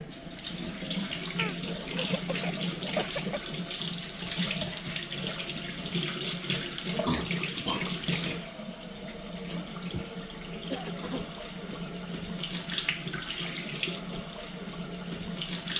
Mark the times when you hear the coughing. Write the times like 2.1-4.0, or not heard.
1.4-3.4, 7.0-8.4, 10.7-11.9.